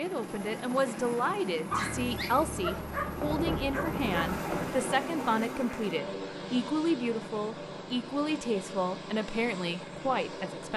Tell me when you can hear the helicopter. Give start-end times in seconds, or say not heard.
0.0-10.7.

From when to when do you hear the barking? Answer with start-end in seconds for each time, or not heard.
1.7-4.4.